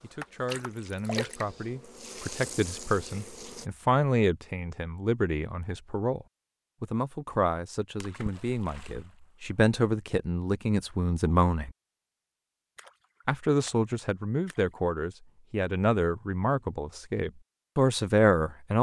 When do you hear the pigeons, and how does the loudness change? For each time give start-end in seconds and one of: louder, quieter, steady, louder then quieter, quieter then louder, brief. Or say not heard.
not heard.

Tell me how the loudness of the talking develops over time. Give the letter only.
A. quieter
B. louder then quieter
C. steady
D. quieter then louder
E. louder
E.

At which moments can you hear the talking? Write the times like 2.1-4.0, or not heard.
0.0-11.7, 13.2-18.7.